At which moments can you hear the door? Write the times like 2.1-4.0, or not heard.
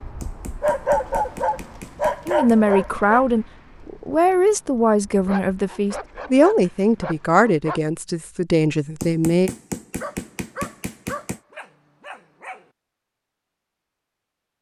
not heard.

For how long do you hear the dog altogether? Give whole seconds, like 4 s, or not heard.
8 s.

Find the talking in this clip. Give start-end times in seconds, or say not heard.
2.2-9.5.